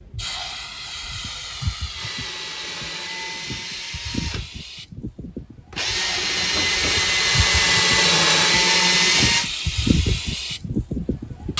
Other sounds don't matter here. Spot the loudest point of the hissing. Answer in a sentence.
The volume of the hissing peaks at 10 seconds.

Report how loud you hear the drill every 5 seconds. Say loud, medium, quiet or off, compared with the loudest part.
quiet, loud, off.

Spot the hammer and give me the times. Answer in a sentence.
The hammer can't be heard in this clip.